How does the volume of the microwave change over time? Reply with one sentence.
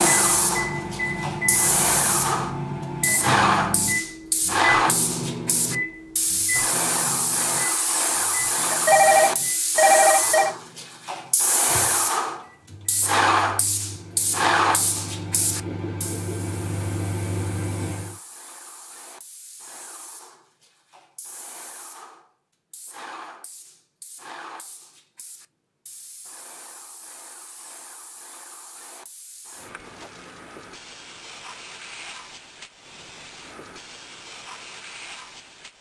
The volume of the microwave goes down, then up.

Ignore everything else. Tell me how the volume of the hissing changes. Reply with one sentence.
The volume of the hissing goes down.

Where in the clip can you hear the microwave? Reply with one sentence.
You can hear the microwave from 0.0 to 18.1 s.